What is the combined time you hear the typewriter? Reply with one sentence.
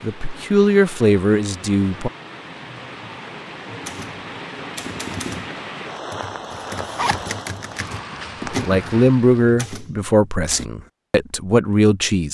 The typewriter can be heard for 7 seconds in total.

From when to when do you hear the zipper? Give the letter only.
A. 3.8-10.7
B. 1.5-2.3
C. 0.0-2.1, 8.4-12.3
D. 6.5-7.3
D.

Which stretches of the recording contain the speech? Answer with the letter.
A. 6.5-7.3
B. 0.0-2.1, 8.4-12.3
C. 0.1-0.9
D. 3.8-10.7
B.